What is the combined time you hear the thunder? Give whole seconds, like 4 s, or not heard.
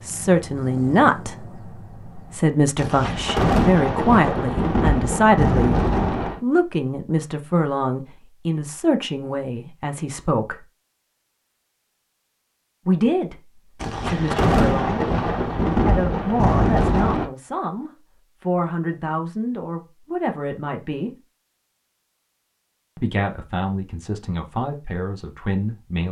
7 s.